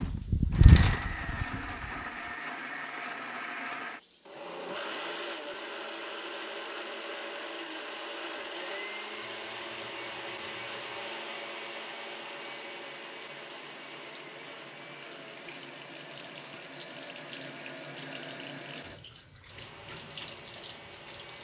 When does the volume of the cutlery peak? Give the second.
1 s.